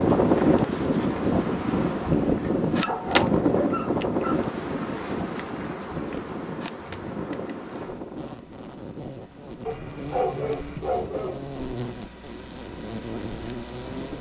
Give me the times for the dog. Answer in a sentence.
The dog can be heard from 2.7 to 4.5 s and from 9.7 to 11.4 s.